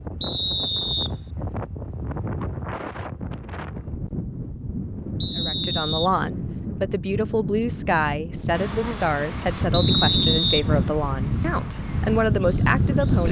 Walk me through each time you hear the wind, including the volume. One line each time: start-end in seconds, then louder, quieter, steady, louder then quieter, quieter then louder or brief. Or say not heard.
0.0-13.2 louder.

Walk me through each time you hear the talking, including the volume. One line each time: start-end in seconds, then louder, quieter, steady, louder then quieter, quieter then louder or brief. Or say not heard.
5.3-13.2 steady.